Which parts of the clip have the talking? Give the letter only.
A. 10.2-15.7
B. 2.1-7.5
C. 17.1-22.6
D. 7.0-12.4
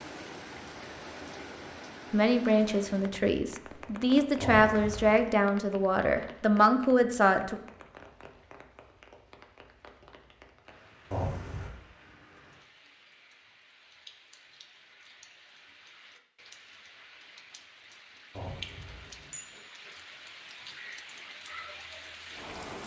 B.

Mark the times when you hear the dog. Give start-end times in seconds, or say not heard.
not heard.